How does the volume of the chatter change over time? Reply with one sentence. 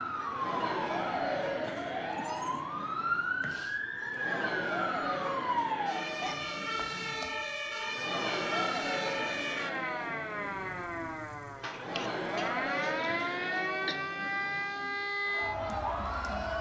The volume of the chatter stays about the same.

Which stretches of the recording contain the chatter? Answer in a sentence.
You can hear the chatter from 0.0 to 16.5 s.